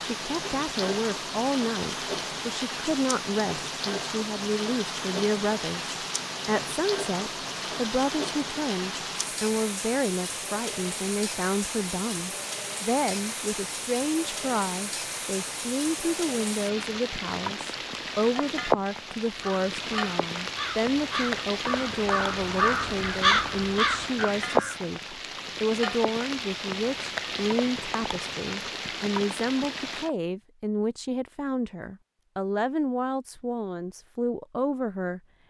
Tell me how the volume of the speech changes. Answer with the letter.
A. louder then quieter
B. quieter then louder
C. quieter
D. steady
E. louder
D.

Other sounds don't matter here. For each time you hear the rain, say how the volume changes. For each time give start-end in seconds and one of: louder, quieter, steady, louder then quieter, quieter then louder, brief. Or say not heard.
0.0-30.1 steady.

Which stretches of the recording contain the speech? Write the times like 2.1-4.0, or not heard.
0.0-35.2.